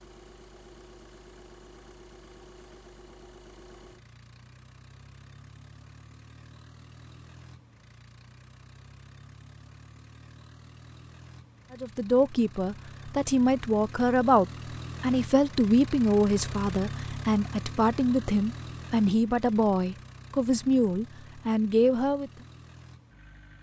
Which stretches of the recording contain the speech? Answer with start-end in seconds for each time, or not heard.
11.7-22.3.